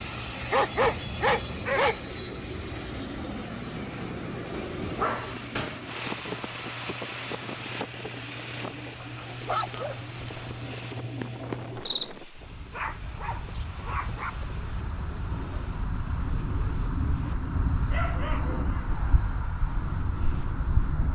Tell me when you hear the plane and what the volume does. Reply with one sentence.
You can hear the plane from 0.0 to 21.1 s, getting quieter.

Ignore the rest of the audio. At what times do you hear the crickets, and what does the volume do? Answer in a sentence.
You can hear the crickets from 0.0 to 21.1 s, getting louder.